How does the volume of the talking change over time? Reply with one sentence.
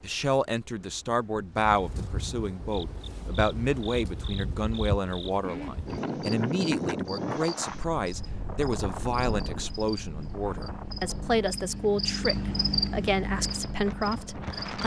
The loudness of the talking stays about the same.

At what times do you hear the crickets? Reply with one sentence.
The crickets can be heard from 2.7 to 14.8 s.